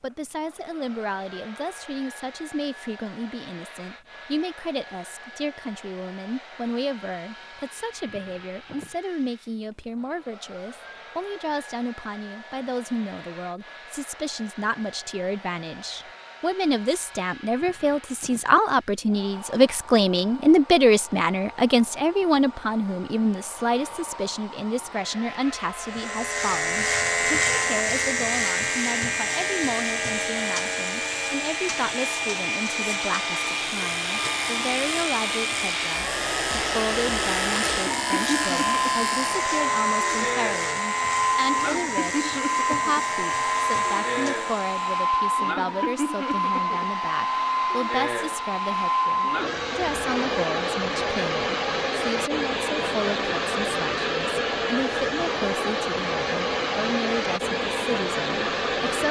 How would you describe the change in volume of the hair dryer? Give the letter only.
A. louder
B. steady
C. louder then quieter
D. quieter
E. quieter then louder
A.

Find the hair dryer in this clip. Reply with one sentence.
The hair dryer can be heard from 0.0 to 59.0 s.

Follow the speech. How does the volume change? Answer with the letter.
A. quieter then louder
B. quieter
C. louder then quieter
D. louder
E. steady
C.